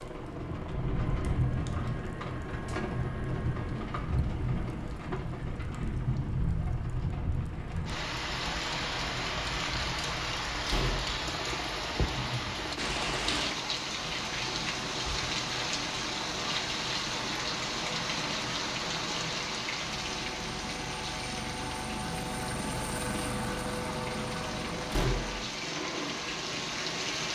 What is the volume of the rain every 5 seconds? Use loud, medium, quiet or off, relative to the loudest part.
loud, loud, loud, loud, medium, loud.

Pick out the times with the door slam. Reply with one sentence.
You can hear the door slam from 10.7 to 11.2 s and from 24.9 to 25.4 s.